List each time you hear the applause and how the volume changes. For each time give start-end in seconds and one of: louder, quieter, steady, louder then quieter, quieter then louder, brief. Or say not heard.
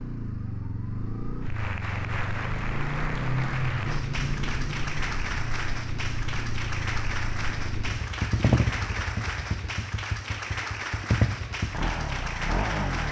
1.4-13.0 steady.